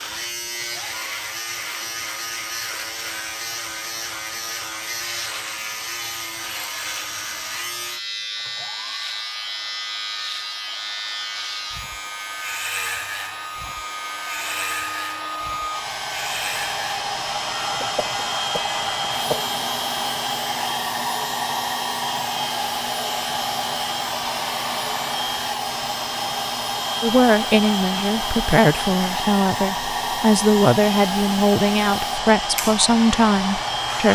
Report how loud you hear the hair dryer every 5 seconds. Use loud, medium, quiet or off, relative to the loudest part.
quiet, quiet, medium, loud, loud, loud, loud.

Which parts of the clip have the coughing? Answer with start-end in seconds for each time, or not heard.
17.6-19.6.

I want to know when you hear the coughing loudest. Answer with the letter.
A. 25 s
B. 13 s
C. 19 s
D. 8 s
C.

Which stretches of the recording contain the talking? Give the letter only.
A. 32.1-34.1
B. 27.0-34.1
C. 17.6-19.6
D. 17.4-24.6
B.